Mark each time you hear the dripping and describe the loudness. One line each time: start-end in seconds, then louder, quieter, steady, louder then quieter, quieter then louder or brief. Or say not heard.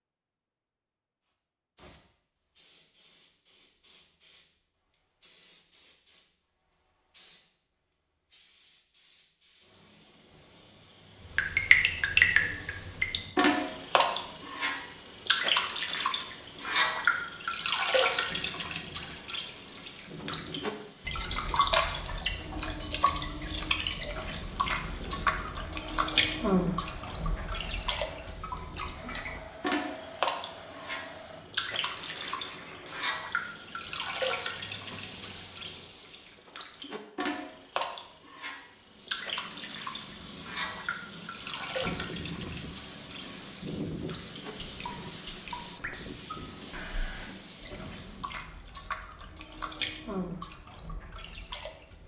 11.3-52.0 quieter.